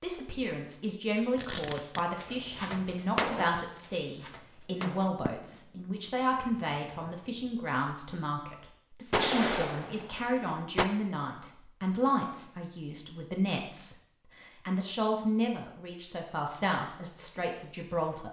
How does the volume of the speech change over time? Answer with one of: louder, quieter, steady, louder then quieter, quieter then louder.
steady.